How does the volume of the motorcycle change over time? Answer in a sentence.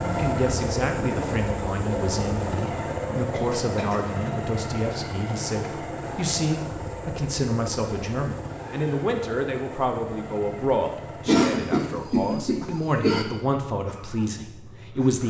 The volume of the motorcycle goes down.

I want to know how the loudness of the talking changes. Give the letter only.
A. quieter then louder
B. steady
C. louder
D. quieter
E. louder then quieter
B.